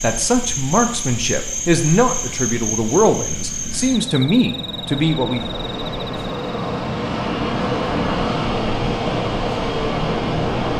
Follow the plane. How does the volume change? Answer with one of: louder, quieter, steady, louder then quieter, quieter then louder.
louder.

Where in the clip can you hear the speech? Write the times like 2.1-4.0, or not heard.
0.0-5.5.